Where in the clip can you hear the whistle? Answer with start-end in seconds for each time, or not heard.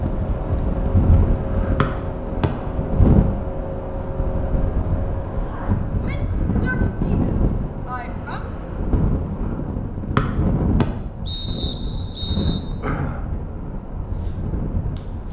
1.8-2.5, 10.2-12.7.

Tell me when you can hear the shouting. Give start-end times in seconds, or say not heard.
5.9-8.4.